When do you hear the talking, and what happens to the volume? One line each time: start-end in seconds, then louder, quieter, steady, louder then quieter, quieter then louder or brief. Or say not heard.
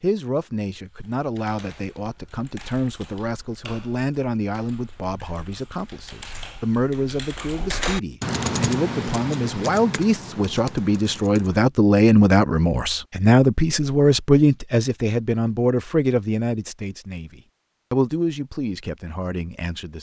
0.0-19.9 louder then quieter.